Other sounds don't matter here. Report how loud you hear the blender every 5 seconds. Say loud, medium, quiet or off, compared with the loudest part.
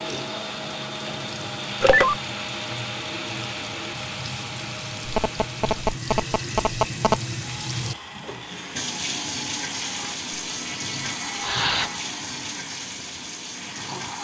loud, medium, medium.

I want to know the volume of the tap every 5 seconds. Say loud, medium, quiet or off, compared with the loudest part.
medium, loud, loud.